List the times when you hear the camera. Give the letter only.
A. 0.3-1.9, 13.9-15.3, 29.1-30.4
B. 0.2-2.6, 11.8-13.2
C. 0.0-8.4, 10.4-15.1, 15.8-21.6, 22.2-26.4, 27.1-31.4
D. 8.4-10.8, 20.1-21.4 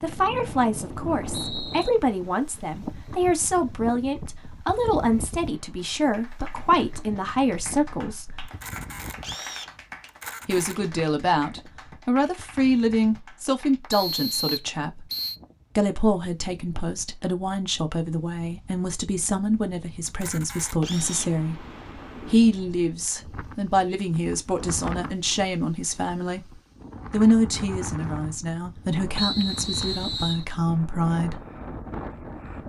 D.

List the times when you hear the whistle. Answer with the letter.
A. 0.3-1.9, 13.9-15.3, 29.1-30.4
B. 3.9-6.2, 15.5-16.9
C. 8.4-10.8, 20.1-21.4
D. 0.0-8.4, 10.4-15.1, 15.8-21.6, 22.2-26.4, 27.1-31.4
A.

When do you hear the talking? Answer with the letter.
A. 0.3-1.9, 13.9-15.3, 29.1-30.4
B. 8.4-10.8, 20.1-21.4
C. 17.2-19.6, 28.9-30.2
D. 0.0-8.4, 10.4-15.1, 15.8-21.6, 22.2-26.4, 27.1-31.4
D.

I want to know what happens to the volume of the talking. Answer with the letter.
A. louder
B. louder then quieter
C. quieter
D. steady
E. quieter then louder
D.